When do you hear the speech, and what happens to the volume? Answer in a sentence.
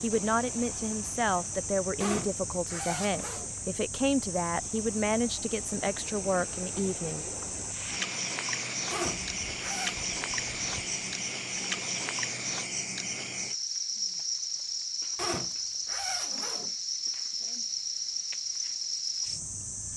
You can hear the speech from 0.0 to 7.2 s, at a steady volume.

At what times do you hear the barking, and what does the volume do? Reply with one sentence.
You can't hear the barking here.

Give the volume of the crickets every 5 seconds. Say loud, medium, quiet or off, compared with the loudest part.
medium, loud, loud, loud.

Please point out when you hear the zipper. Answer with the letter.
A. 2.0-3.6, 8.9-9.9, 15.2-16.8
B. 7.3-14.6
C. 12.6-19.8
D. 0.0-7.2
A.